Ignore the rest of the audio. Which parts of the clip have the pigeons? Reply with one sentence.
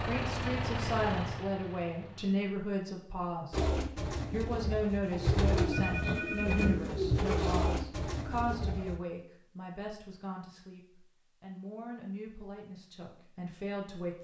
You can hear the pigeons from 3.5 to 9.0 s.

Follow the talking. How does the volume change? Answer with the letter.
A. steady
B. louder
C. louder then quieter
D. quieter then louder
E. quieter
E.